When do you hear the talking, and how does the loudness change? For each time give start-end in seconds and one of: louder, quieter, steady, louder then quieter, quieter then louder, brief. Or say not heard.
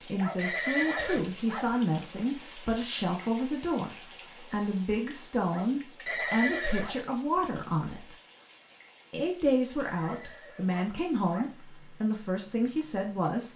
0.0-8.2 steady
9.1-13.5 steady.